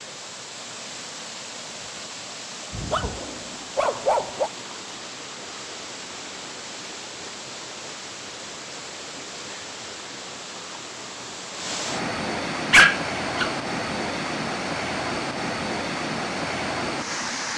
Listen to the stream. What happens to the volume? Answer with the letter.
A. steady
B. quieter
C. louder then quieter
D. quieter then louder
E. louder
E.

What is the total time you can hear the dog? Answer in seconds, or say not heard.
3 s.